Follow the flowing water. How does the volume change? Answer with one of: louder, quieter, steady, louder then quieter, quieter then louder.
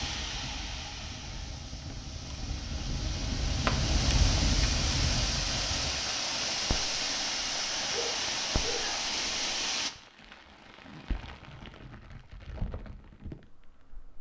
louder.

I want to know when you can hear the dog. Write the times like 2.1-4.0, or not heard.
7.9-9.1.